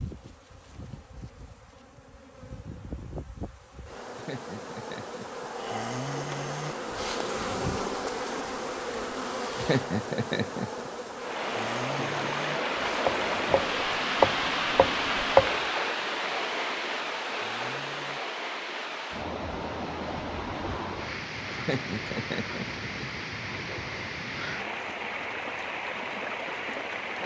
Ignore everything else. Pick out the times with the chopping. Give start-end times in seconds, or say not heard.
13.1-15.6.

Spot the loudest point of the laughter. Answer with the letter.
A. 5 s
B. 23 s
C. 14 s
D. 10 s
D.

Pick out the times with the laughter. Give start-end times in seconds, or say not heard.
4.2-5.5, 9.6-10.9, 21.6-23.2.